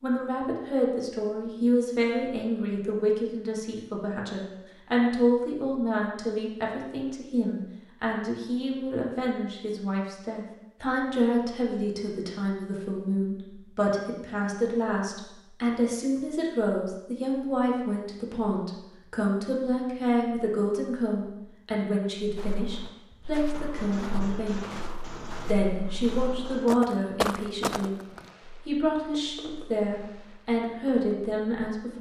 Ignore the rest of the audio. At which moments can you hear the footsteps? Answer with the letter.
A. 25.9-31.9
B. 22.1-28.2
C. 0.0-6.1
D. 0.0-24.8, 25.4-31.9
B.